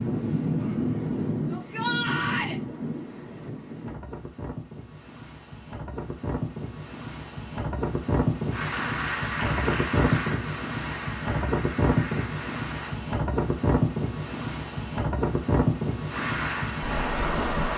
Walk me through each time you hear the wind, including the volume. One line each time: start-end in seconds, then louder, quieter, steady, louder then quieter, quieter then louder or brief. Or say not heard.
0.0-17.7 quieter then louder.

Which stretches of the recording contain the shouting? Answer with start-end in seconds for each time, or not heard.
1.5-2.5.